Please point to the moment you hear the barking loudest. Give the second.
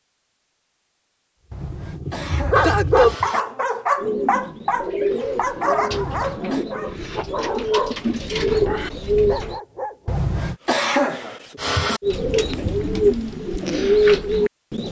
3 s.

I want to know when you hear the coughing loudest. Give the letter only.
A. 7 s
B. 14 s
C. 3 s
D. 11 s
D.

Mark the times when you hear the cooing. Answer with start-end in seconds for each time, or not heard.
4.0-9.6, 12.0-14.8.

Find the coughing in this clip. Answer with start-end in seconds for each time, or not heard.
1.5-3.4, 5.9-6.7, 10.1-12.0.